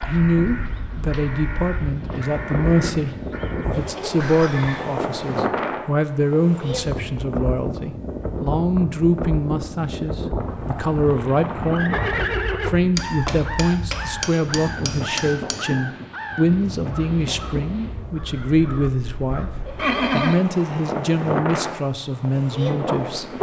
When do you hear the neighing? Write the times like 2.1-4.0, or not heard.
4.2-4.8, 11.1-12.8, 19.8-20.4.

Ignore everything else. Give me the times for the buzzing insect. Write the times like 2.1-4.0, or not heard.
not heard.